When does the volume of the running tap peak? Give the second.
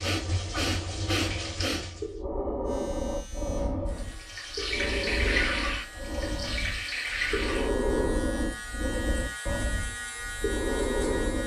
5 s.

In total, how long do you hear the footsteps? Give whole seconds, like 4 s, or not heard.
not heard.